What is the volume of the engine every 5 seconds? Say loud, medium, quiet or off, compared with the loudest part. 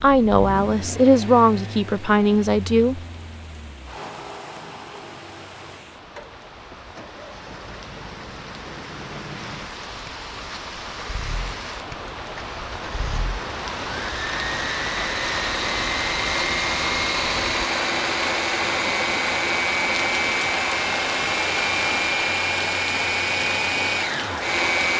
quiet, quiet, medium, loud, loud.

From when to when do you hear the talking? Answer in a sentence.
The talking can be heard from 0.0 to 3.0 s.